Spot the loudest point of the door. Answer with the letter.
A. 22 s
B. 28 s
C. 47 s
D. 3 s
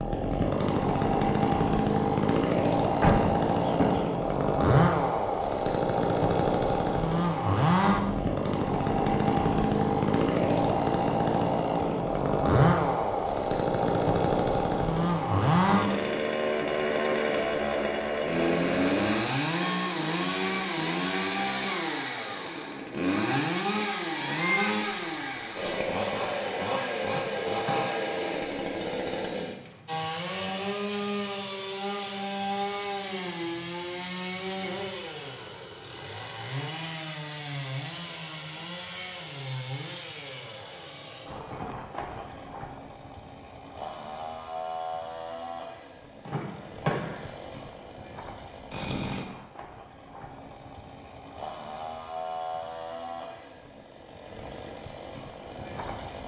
D.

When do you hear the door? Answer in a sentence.
The door can be heard from 3.0 to 4.0 s, from 27.1 to 28.1 s and from 46.2 to 47.2 s.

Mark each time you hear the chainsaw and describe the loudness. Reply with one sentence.
You can hear the chainsaw from 0.0 to 56.2 s, getting quieter.